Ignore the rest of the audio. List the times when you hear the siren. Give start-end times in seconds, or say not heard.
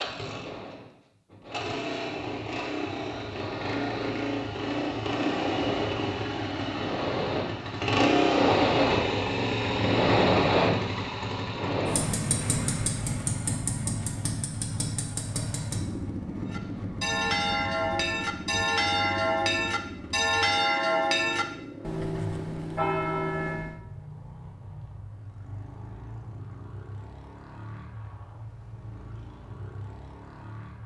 not heard.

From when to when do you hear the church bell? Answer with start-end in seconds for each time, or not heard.
16.5-23.8.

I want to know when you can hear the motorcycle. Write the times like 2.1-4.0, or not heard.
0.0-30.8.